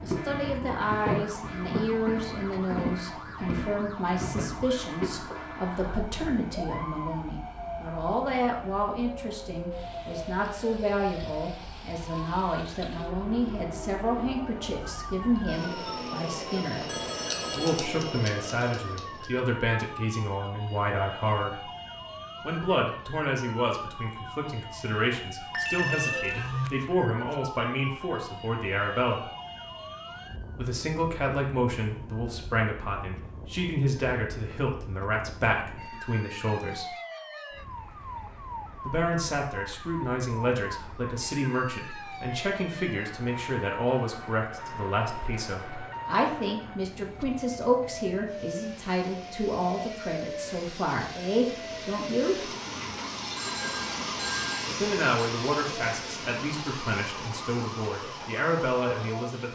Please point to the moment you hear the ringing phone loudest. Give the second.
26 s.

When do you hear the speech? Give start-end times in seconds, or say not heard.
0.0-16.8, 17.6-21.6, 22.4-29.2, 30.6-37.0, 38.9-52.5, 54.8-59.4.